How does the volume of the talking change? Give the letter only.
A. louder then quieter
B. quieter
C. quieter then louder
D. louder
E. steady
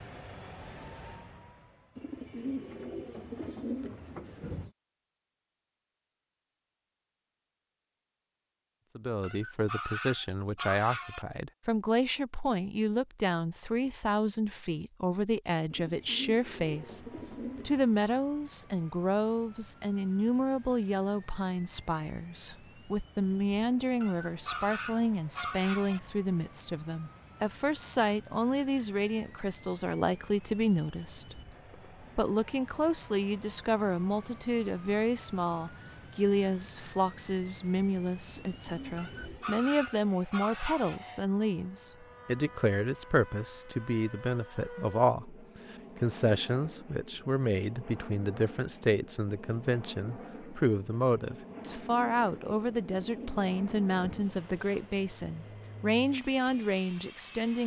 E.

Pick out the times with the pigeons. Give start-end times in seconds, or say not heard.
1.9-4.7, 15.7-17.9, 38.2-39.6, 51.5-54.2.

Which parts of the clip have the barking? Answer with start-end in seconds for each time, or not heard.
9.2-11.2, 24.0-26.0, 39.0-41.0.